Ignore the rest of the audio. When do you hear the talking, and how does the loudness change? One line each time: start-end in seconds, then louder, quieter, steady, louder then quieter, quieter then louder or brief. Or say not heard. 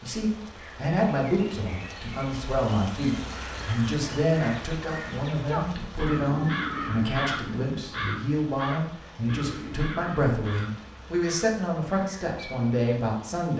0.0-13.5 steady.